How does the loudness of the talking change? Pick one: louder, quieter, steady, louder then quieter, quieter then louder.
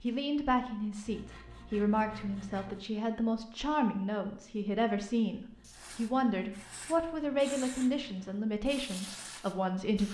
steady.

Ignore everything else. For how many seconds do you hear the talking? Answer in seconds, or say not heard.
10 s.